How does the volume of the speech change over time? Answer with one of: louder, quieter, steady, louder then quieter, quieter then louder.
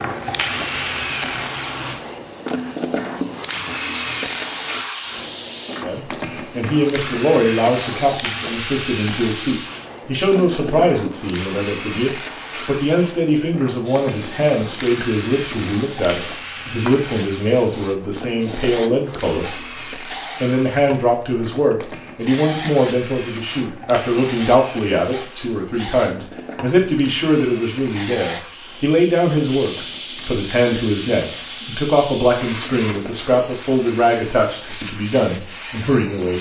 steady.